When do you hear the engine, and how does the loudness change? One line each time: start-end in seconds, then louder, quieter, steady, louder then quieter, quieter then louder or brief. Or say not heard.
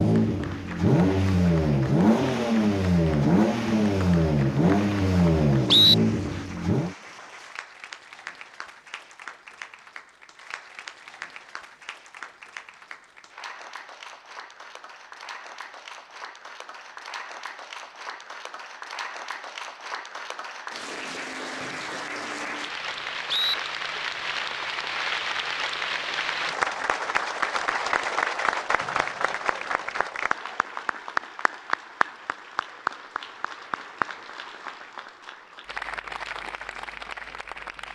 0.0-7.0 steady.